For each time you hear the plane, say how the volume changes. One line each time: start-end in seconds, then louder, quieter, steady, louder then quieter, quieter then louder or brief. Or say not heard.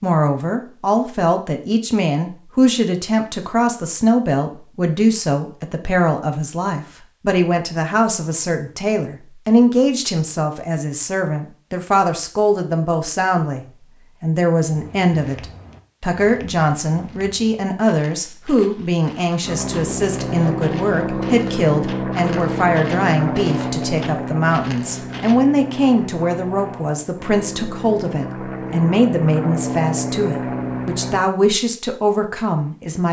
19.4-31.2 quieter then louder.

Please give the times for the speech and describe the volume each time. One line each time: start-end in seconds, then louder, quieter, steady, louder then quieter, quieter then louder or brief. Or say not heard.
0.0-33.0 steady.